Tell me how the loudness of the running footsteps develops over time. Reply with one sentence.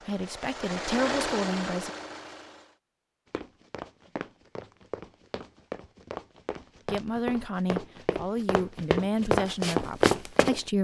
The loudness of the running footsteps goes up.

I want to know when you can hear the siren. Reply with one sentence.
The siren can't be heard in this clip.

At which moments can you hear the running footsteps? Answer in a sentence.
The running footsteps can be heard from 3.3 to 10.6 s.